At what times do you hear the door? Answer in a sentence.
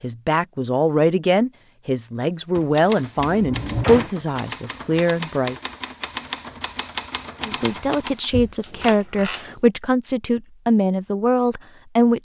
You can hear the door from 3.2 to 4.1 s and from 8.3 to 9.6 s.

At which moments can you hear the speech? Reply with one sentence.
You can hear the speech from 0.0 to 5.5 s and from 7.4 to 12.2 s.